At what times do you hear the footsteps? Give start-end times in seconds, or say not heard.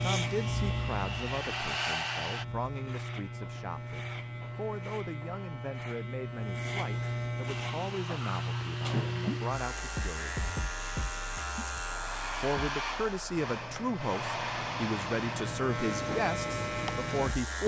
not heard.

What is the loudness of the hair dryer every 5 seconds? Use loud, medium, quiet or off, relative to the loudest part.
loud, medium, loud, medium.